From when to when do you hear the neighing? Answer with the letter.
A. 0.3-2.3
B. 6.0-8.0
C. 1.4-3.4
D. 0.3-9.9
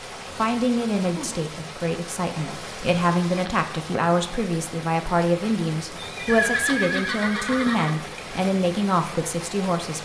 B.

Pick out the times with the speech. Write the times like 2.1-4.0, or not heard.
0.3-9.9.